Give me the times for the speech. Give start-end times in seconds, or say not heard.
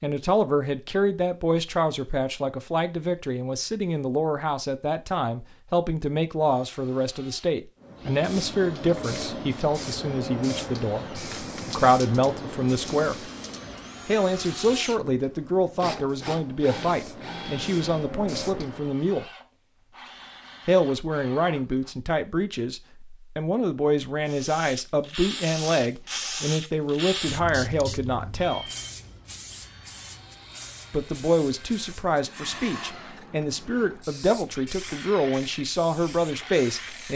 0.0-13.2, 14.1-19.2, 20.6-28.6, 30.9-37.1.